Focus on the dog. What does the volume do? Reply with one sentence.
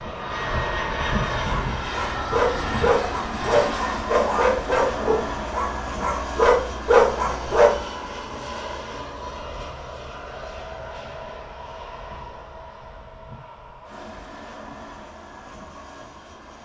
The loudness of the dog goes down, then up.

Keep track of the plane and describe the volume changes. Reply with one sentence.
The volume of the plane goes down.